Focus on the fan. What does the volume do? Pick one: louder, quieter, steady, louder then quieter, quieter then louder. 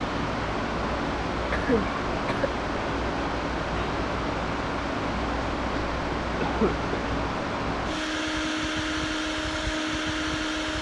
steady.